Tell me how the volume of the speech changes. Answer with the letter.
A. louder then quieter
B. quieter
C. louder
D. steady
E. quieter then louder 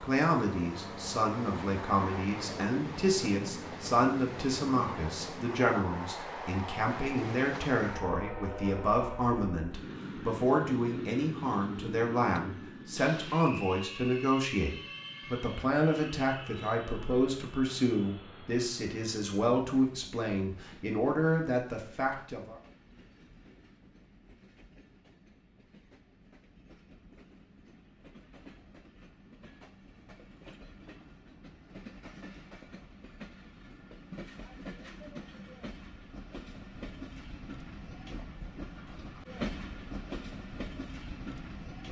D.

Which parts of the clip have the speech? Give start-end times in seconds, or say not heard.
0.0-22.6.